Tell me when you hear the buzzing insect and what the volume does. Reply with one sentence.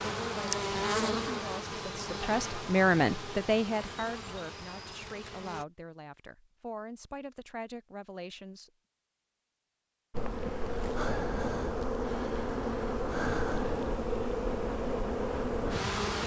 The buzzing insect can be heard from 0.0 to 5.7 s, getting quieter; and from 10.1 to 16.2 s, at a steady volume.